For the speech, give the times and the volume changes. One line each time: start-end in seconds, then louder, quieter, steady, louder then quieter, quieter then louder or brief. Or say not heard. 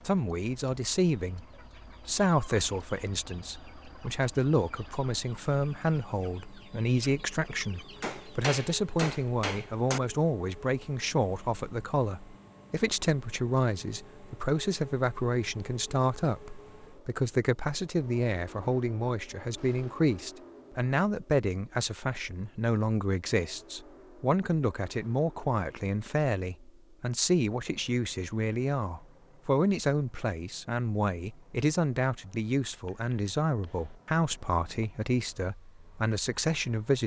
0.1-37.0 steady.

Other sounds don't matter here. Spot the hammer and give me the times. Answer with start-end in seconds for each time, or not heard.
8.0-10.0, 32.9-34.9.